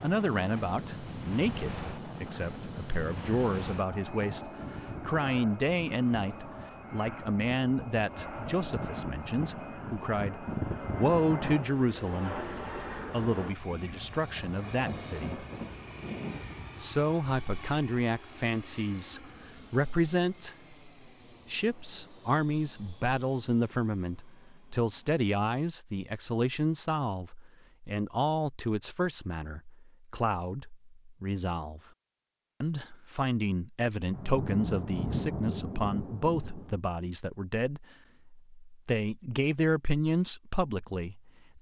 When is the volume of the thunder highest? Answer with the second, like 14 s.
35 s.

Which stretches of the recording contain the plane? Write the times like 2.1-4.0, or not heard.
0.0-25.2.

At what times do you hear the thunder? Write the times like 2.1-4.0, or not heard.
13.7-16.6, 34.1-36.8.